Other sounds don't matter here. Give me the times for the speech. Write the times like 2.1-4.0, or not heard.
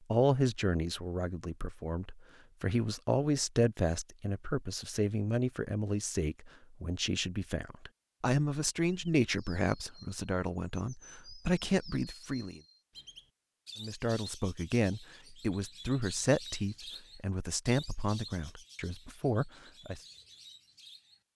0.1-12.6, 13.8-20.0.